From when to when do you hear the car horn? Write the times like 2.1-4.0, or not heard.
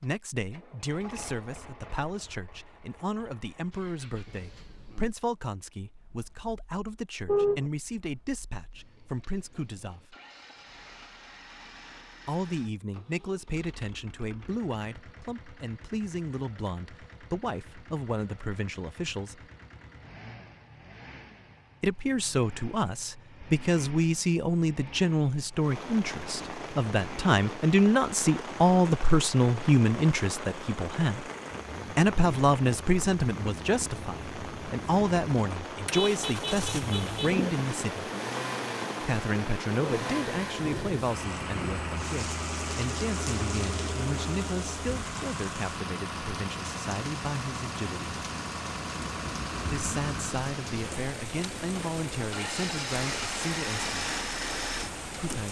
7.2-7.7, 35.9-37.4.